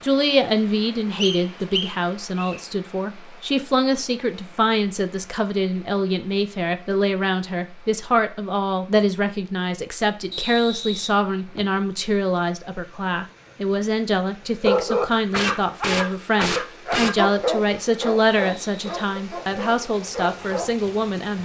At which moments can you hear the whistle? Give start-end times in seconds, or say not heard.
1.2-2.5, 10.3-11.8, 18.4-19.8.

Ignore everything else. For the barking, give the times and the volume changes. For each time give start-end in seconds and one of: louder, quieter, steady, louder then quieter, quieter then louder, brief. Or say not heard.
14.6-20.7 quieter.